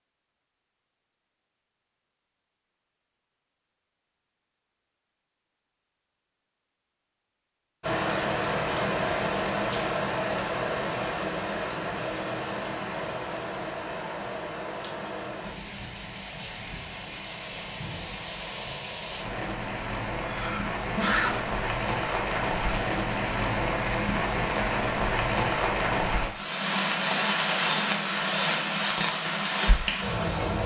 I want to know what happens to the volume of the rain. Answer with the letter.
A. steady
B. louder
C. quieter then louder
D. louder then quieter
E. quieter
C.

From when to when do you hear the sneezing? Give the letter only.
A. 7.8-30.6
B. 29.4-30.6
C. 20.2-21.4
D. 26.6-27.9
C.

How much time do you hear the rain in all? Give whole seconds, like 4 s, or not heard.
23 s.